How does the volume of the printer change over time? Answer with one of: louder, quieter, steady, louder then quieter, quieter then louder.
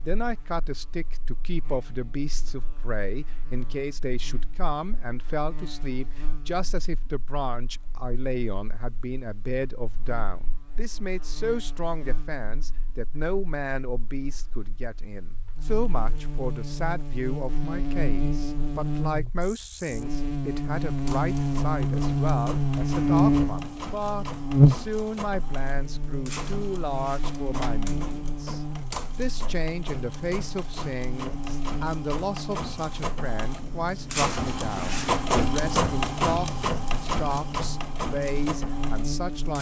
louder.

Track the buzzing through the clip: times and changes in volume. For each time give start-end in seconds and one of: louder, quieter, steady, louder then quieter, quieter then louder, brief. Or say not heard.
0.0-39.5 louder then quieter.